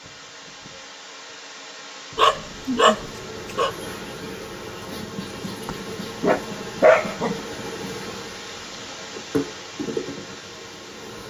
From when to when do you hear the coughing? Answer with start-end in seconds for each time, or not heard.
not heard.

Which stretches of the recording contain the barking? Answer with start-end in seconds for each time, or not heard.
2.1-3.8, 5.7-7.3.